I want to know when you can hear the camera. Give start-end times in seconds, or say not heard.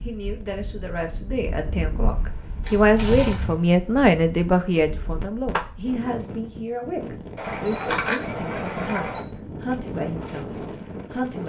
2.6-3.5, 7.3-9.2.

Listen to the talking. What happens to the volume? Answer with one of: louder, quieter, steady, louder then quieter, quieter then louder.
louder then quieter.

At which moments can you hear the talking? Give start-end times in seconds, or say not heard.
0.0-11.4.